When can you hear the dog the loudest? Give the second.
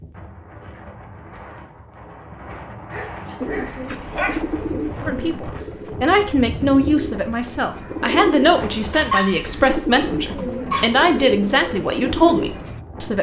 9 s.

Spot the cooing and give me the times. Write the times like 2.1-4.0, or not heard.
3.4-12.8.